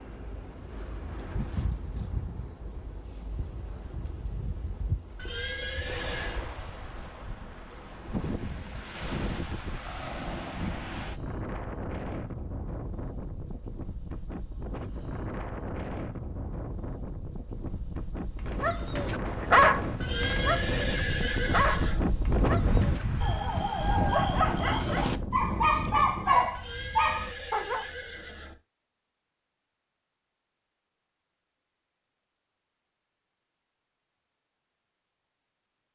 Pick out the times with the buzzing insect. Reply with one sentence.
The buzzing insect can't be heard in this clip.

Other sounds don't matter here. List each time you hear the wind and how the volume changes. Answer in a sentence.
The wind can be heard from 0.0 to 26.6 s, getting louder.